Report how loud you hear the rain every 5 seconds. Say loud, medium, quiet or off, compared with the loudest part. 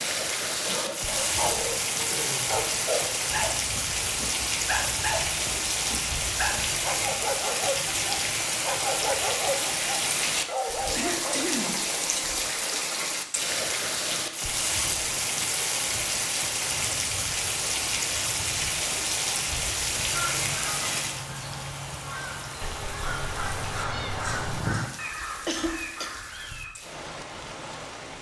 loud, loud, loud, loud, medium, quiet.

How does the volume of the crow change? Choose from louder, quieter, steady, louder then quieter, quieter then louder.
louder then quieter.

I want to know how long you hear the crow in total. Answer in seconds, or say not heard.
7 s.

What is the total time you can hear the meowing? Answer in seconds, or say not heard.
2 s.